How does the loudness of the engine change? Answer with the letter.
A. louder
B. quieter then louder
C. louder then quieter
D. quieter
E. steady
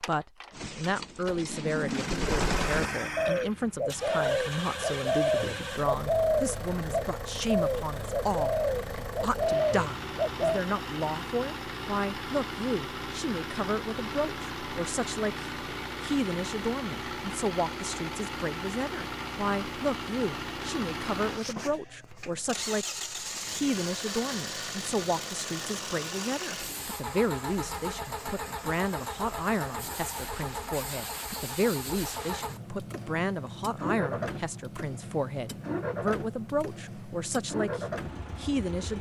E.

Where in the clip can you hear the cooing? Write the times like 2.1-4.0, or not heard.
0.5-10.6.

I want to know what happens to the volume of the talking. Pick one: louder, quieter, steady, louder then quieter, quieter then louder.
steady.